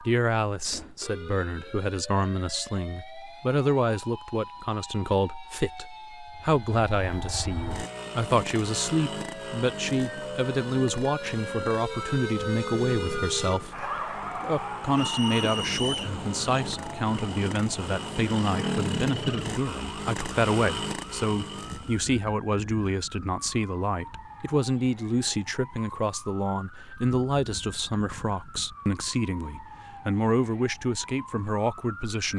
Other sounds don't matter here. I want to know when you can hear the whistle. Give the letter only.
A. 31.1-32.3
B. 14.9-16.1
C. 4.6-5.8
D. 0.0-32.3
B.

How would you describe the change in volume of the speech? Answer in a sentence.
The loudness of the speech stays about the same.